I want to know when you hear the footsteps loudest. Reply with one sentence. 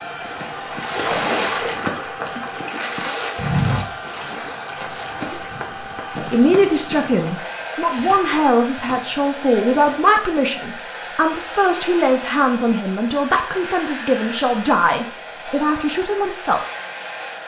The volume of the footsteps peaks at 4 seconds.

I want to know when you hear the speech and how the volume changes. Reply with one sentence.
You can hear the speech from 6.3 to 16.6 s, at a steady volume.